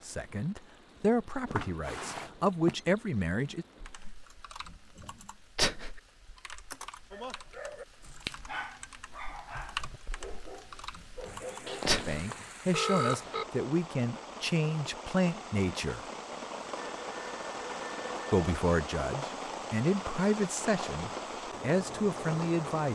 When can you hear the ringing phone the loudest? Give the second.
13 s.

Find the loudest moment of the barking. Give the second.
8 s.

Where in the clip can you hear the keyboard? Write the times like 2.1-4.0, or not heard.
3.8-12.2.